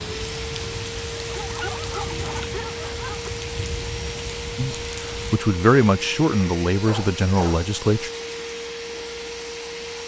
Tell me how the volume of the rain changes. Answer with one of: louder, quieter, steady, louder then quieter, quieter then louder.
steady.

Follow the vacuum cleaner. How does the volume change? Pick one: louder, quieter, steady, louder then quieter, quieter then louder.
steady.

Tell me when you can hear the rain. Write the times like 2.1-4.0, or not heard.
0.0-5.4.